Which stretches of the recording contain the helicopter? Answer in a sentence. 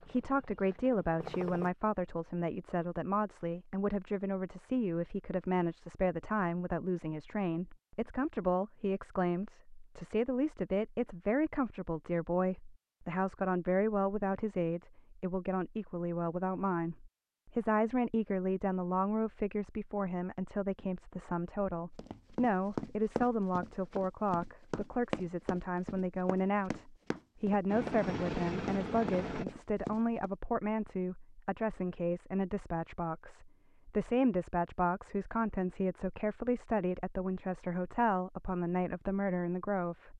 The helicopter can be heard from 0.0 to 1.7 s and from 27.6 to 29.4 s.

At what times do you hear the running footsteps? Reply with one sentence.
You can hear the running footsteps from 21.9 to 30.3 s.